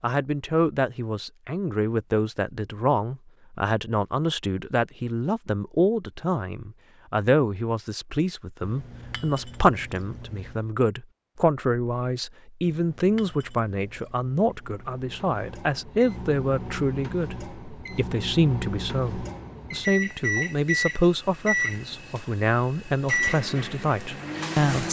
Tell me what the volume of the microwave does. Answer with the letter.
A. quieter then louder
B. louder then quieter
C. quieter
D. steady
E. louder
E.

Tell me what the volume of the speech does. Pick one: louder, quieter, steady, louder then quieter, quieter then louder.
steady.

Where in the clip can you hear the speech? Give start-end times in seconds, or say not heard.
0.0-24.8.